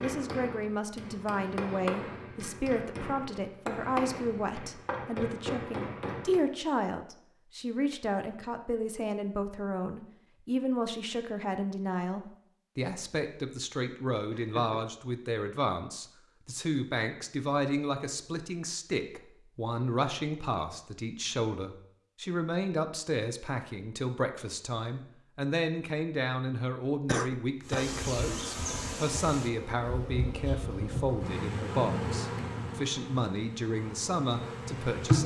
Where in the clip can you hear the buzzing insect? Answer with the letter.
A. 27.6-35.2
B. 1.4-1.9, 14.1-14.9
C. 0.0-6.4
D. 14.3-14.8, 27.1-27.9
A.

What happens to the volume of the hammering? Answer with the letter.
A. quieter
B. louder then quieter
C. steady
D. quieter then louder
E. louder
E.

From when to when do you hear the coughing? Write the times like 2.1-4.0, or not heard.
14.3-14.8, 27.1-27.9.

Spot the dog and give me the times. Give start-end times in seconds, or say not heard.
not heard.